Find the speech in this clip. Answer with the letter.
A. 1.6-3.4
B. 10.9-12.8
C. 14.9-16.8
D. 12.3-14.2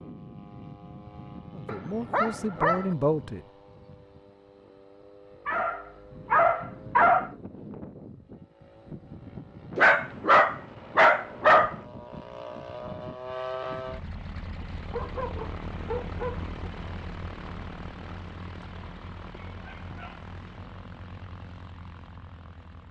A.